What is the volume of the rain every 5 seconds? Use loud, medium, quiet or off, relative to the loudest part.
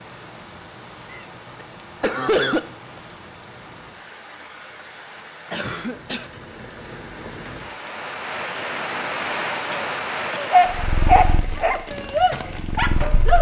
medium, loud, loud.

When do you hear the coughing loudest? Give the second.
2 s.